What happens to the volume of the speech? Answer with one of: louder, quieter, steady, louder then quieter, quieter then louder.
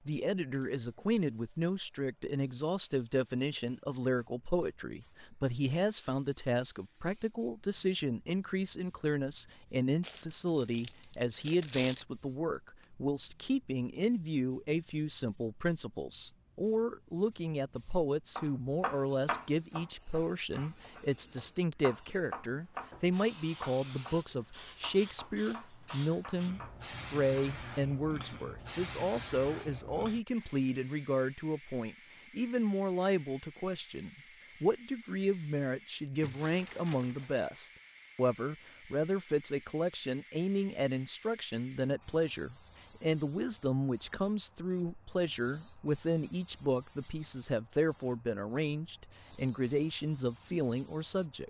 steady.